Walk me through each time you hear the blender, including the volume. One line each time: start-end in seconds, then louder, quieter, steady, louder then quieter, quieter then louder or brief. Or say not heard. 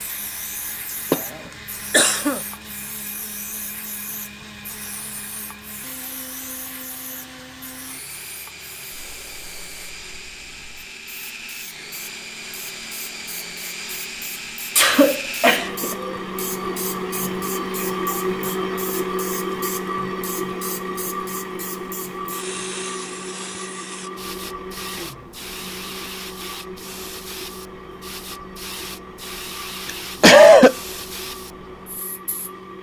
0.0-32.7 louder then quieter.